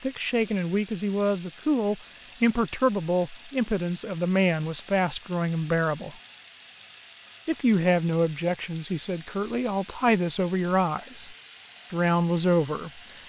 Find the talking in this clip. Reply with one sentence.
You can hear the talking from 0.0 to 6.2 s and from 7.5 to 13.0 s.